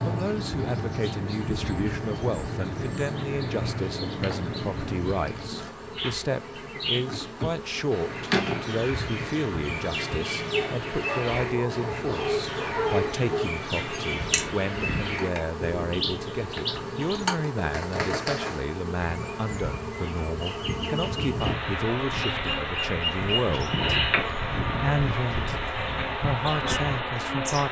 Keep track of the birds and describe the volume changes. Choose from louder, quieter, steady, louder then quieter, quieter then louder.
steady.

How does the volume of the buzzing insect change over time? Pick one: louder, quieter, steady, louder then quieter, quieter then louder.
louder.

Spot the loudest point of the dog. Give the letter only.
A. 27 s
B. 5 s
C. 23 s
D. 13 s
D.